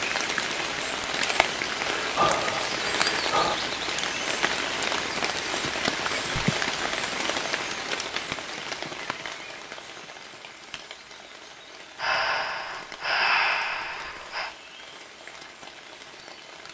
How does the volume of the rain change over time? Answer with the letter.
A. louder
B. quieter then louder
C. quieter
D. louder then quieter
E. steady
C.